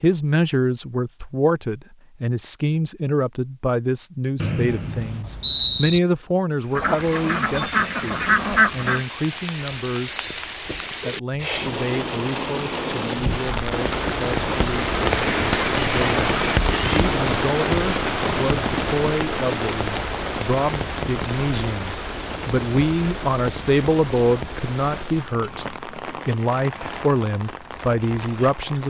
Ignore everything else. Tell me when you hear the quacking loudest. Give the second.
8 s.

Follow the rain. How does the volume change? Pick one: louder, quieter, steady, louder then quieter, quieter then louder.
louder then quieter.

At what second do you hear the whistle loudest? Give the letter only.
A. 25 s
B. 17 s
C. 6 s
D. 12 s
C.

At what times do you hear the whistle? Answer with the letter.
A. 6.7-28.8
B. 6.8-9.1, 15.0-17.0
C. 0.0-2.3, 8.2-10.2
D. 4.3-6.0
D.